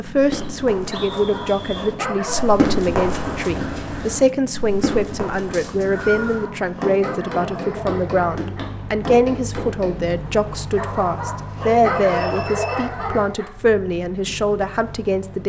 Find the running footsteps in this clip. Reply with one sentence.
You can hear the running footsteps from 0.1 to 10.2 s.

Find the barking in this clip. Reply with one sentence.
The barking can be heard from 0.8 to 2.5 s, from 5.9 to 8.8 s and from 10.7 to 13.5 s.